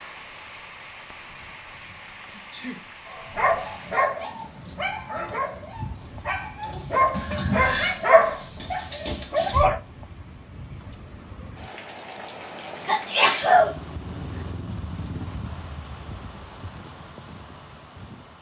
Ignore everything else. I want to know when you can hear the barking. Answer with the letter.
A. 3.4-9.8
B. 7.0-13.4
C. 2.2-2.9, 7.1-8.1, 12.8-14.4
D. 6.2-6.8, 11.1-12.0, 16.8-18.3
A.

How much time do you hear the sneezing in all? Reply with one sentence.
You can hear the sneezing for 3 seconds altogether.